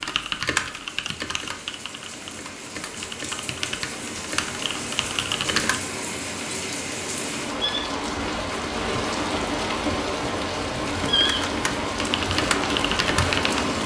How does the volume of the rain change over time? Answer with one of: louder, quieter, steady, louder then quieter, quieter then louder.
louder.